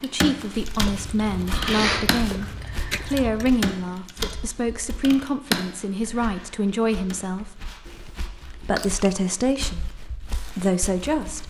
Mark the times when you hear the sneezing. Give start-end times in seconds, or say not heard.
1.4-2.5.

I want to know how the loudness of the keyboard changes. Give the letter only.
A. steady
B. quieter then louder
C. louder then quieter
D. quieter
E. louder
B.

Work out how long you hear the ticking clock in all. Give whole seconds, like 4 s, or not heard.
not heard.